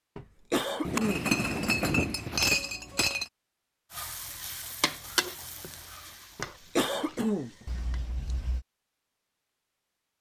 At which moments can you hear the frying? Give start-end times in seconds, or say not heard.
3.9-8.1.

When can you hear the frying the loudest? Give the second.
5 s.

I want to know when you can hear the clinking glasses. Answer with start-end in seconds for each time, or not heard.
0.8-3.2, 7.7-8.7.